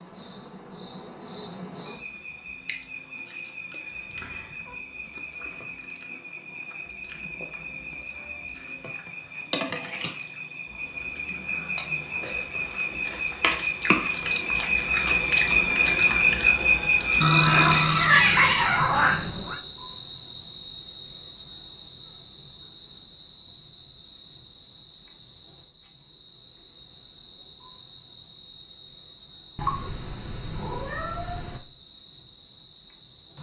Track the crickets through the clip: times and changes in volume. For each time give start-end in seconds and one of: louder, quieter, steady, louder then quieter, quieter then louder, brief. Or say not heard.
0.0-33.3 louder then quieter.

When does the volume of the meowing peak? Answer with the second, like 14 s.
18 s.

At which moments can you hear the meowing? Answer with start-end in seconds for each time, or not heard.
4.1-4.8, 17.2-19.6, 29.6-31.6.